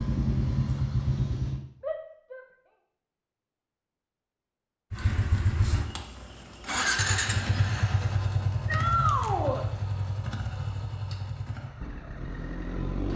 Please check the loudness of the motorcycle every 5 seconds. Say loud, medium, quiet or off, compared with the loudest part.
loud, loud, medium.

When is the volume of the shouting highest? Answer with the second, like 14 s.
9 s.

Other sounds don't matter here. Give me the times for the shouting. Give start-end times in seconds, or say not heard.
1.8-2.5, 8.7-9.7.